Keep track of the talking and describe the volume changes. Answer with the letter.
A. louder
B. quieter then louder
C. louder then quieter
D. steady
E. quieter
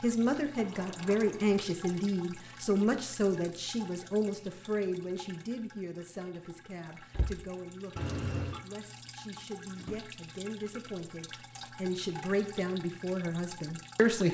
B.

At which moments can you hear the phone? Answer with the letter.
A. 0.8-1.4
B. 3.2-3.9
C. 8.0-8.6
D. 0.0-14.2
C.